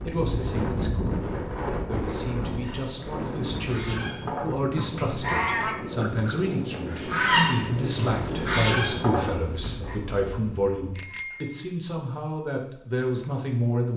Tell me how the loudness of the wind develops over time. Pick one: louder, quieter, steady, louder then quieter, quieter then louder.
quieter.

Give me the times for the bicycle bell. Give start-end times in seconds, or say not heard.
10.9-11.7.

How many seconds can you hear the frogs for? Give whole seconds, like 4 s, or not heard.
not heard.